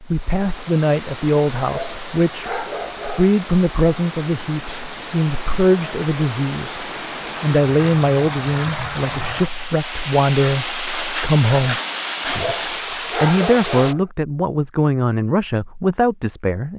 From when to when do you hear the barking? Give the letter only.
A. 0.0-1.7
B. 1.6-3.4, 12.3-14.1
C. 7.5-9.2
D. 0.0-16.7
B.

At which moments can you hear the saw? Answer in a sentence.
You can hear the saw from 10.8 to 12.6 s.